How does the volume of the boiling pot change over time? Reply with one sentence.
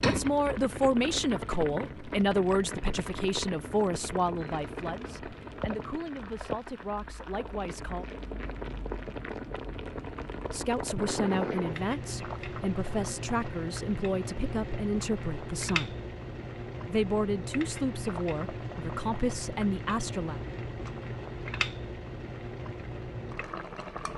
The volume of the boiling pot stays about the same.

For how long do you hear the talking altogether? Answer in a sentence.
You can hear the talking for 17 seconds altogether.